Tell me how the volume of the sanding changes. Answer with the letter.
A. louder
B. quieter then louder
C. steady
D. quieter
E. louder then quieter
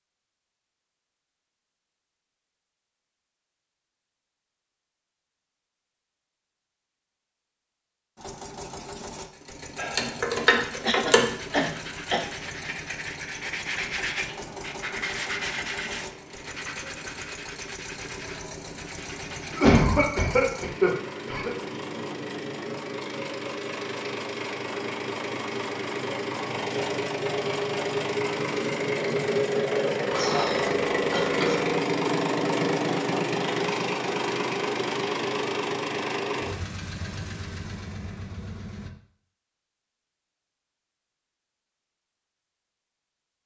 E.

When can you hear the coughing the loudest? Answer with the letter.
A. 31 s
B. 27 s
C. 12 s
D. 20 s
D.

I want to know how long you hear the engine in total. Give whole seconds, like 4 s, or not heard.
31 s.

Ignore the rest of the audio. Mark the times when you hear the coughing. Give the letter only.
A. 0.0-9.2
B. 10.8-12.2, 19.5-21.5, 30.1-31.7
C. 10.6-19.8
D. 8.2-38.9
B.